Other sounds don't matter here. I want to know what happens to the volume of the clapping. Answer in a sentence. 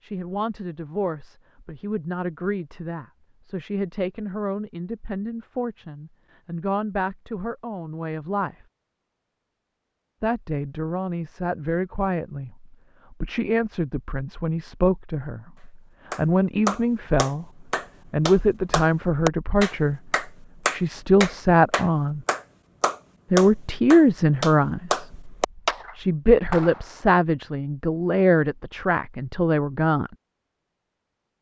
The volume of the clapping stays about the same.